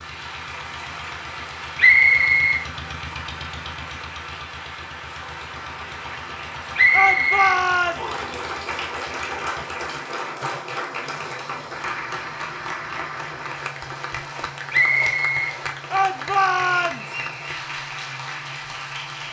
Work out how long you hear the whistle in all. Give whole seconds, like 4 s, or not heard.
3 s.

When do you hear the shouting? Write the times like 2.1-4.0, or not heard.
6.9-8.0, 15.9-17.1.